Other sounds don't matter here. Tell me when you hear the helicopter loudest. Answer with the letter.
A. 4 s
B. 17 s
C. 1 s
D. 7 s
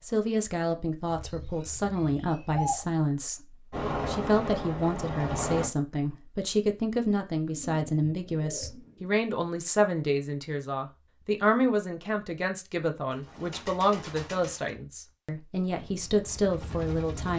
A.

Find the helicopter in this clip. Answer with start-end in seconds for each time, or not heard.
3.7-5.7, 15.7-17.3.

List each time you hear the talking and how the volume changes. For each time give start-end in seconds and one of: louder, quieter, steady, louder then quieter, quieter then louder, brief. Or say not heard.
0.0-17.3 steady.